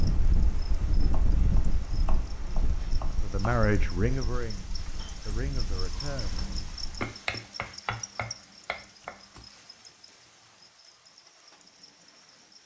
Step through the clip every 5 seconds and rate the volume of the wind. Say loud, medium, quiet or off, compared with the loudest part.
loud, medium, off.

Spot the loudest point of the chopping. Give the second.
7 s.